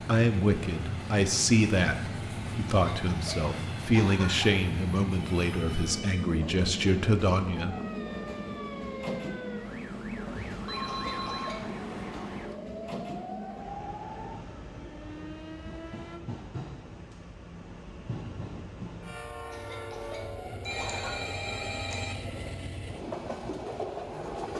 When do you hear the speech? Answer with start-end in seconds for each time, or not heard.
0.1-7.8.